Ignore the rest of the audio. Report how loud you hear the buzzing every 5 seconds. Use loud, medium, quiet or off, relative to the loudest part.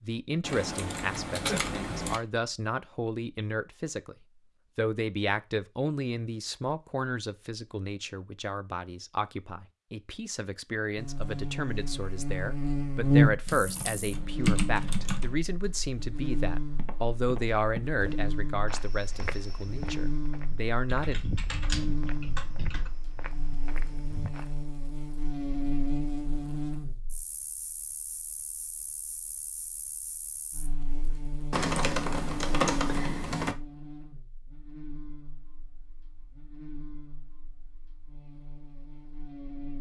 off, off, loud, medium, medium, medium, quiet, quiet.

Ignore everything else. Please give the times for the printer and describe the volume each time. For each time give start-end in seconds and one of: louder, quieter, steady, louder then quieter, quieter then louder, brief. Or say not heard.
not heard.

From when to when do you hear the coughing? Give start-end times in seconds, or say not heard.
not heard.